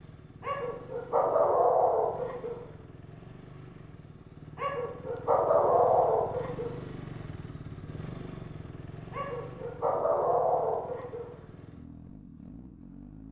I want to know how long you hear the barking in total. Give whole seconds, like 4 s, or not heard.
7 s.